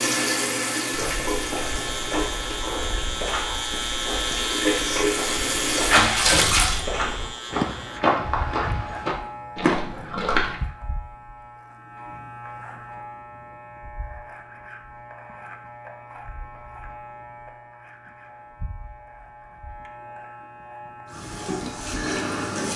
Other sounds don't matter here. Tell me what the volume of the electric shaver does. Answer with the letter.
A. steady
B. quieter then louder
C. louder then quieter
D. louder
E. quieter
E.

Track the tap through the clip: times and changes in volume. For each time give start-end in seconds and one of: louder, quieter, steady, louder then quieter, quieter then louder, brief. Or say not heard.
0.0-6.8 quieter then louder
21.1-22.7 brief.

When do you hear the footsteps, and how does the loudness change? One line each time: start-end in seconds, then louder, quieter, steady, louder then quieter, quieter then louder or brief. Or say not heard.
0.9-10.6 louder.